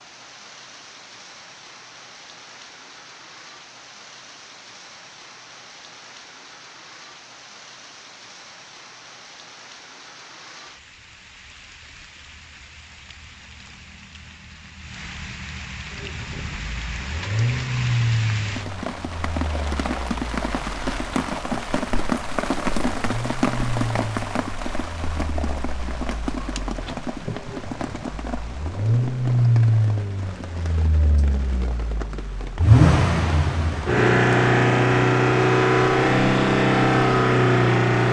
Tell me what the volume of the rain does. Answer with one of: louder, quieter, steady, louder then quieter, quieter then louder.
louder then quieter.